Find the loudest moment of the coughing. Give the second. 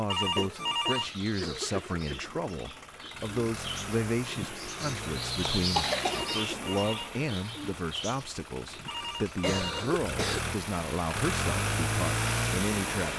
6 s.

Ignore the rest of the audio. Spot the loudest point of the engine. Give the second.
12 s.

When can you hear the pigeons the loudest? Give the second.
6 s.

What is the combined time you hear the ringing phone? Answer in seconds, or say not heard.
3 s.